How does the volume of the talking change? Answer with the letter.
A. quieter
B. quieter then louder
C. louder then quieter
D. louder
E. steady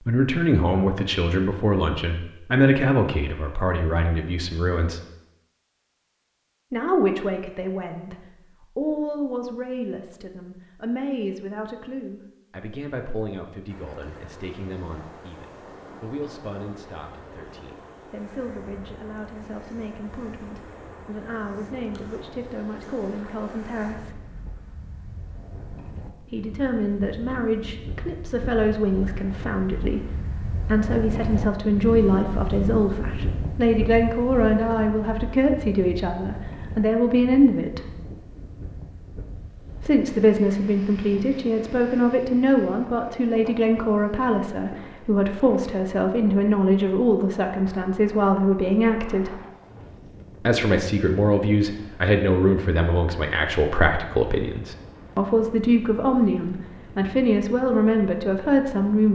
B.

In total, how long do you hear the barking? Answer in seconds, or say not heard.
not heard.